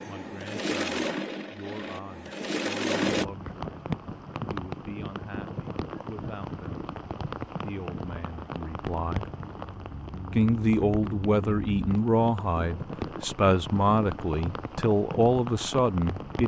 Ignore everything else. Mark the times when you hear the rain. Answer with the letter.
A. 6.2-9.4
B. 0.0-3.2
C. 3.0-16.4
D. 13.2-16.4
C.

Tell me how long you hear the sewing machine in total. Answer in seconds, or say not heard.
3 s.